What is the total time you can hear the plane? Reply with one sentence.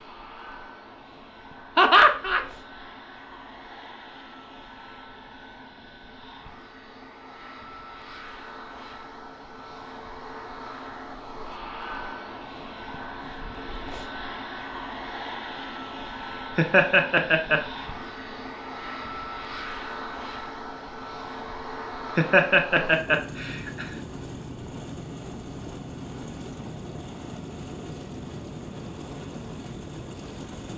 The plane can be heard for 31 seconds in total.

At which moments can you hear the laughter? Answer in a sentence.
You can hear the laughter from 1.8 to 2.4 s, from 16.6 to 17.6 s and from 22.1 to 23.9 s.